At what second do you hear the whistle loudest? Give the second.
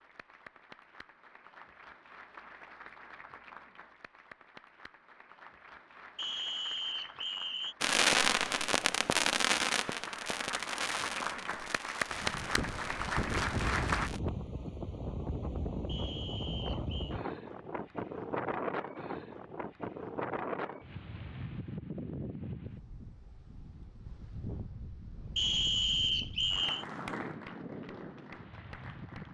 26 s.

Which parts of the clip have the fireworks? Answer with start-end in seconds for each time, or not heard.
7.8-14.2.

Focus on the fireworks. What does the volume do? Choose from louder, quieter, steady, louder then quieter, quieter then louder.
quieter.